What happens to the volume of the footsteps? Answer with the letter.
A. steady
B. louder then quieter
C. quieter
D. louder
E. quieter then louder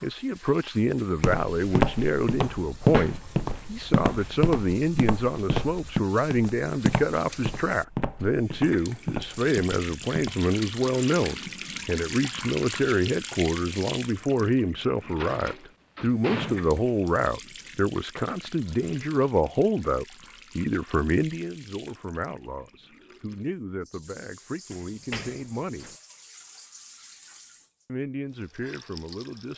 C.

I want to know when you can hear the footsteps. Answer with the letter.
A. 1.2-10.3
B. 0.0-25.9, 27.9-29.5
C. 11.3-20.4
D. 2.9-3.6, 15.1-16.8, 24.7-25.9
A.